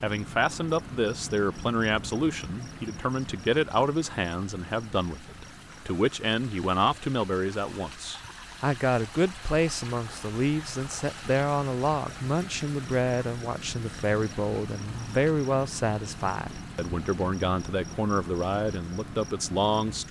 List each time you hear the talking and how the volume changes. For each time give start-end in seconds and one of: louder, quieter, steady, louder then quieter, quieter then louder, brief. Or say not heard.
0.0-20.0 steady.